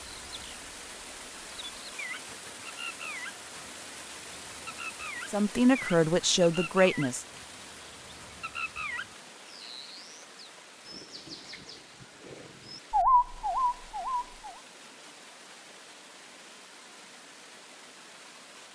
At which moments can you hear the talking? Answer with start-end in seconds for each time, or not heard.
5.3-7.2.